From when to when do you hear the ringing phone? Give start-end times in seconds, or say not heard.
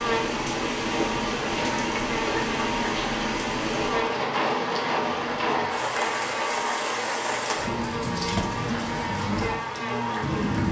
not heard.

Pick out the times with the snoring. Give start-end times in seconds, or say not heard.
not heard.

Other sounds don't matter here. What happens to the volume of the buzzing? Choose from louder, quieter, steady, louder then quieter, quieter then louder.
steady.